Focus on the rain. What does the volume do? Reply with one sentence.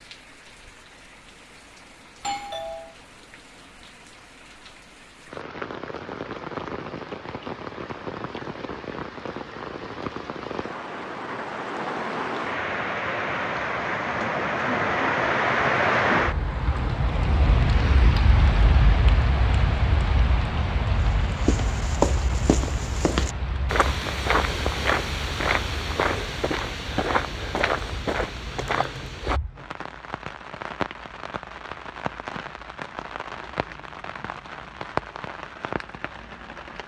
The loudness of the rain goes up, then down.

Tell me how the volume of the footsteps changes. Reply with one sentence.
The loudness of the footsteps stays about the same.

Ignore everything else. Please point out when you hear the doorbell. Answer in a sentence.
The doorbell can be heard from 2.2 to 3.0 s.